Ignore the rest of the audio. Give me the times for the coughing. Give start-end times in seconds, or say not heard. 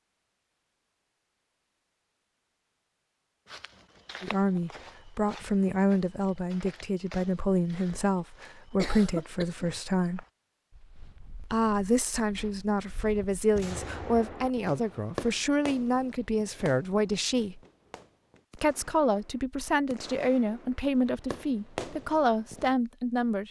8.8-9.7.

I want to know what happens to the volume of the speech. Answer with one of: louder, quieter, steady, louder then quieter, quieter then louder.
steady.